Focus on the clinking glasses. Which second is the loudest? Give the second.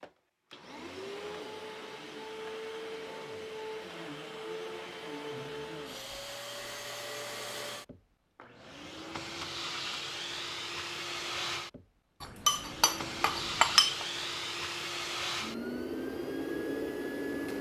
14 s.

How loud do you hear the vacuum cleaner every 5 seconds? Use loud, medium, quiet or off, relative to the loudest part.
medium, medium, loud, loud.